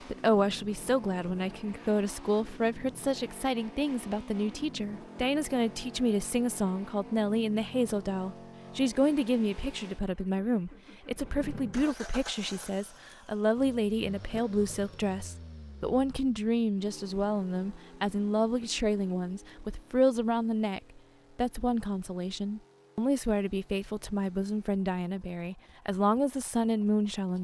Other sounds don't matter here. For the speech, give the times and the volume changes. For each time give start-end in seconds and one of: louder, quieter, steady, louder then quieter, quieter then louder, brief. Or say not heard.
0.1-27.3 steady.